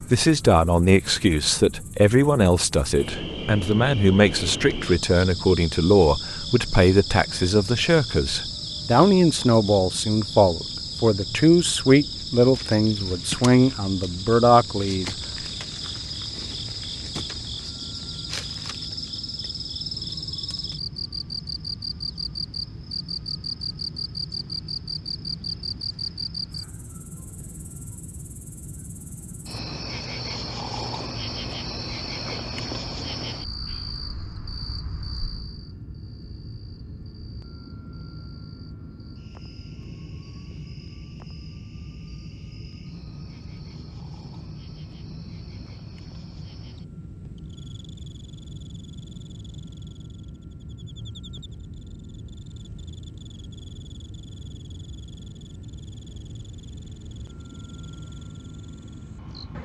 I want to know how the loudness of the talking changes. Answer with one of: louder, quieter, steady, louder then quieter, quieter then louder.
steady.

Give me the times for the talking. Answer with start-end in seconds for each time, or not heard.
0.1-15.2.